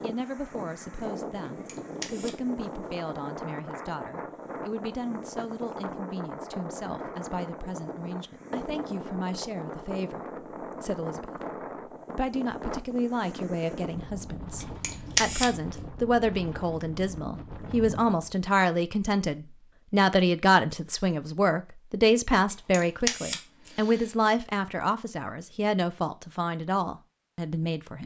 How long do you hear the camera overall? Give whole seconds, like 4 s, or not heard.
3 s.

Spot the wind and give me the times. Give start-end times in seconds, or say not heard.
0.0-18.4.